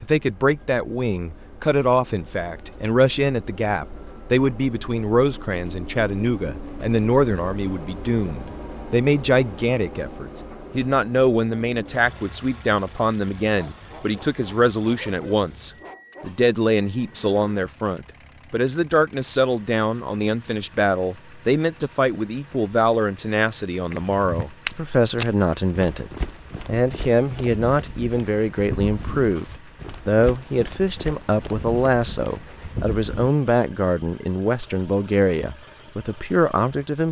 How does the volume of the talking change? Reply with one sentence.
The loudness of the talking stays about the same.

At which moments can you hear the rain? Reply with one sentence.
You can't hear the rain here.